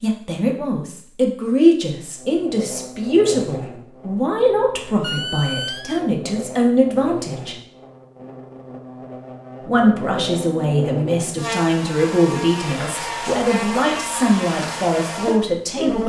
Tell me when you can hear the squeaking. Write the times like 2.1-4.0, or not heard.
5.0-6.0.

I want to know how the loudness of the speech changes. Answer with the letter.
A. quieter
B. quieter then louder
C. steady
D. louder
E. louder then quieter
C.